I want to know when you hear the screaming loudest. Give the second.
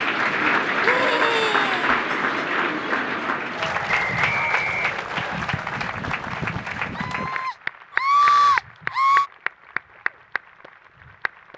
8 s.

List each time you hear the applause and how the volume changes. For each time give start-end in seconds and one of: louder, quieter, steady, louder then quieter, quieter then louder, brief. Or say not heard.
0.0-11.5 quieter.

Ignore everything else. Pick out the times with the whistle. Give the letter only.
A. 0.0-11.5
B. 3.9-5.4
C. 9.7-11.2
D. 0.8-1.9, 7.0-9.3
B.